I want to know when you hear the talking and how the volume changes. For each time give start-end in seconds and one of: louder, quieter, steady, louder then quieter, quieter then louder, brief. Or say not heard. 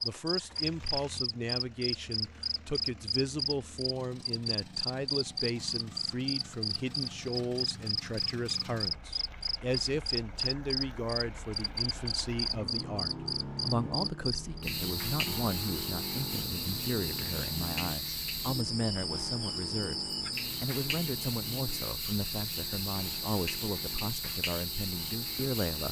0.0-25.8 steady.